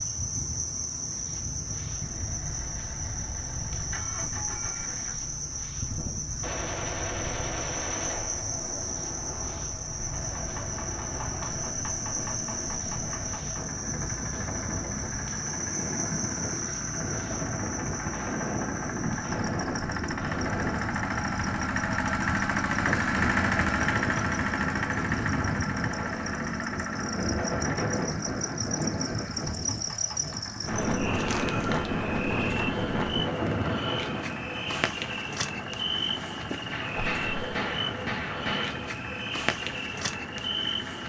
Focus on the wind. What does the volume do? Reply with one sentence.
The loudness of the wind goes up.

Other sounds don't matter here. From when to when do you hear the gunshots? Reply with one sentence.
You can hear the gunshots from 6.4 to 8.4 s, from 18.1 to 20.9 s and from 36.7 to 38.7 s.